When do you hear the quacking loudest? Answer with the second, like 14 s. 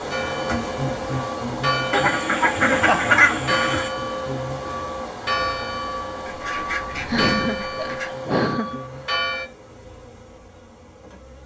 3 s.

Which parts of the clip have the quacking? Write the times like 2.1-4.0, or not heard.
1.9-3.9, 6.2-8.1.